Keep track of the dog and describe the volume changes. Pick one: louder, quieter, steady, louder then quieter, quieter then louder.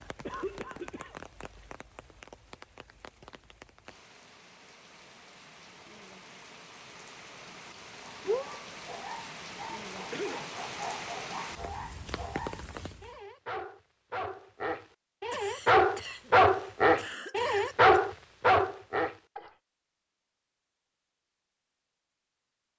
louder.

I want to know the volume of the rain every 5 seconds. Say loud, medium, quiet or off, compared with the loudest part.
medium, medium, loud, off, off.